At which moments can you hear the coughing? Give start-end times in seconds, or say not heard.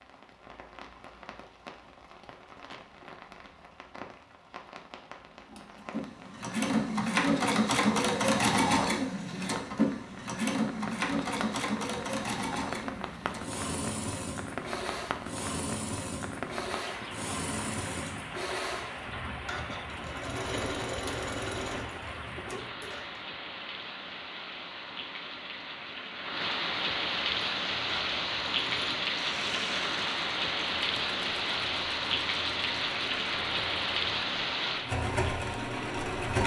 2.2-2.9.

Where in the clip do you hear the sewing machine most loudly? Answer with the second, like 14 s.
8 s.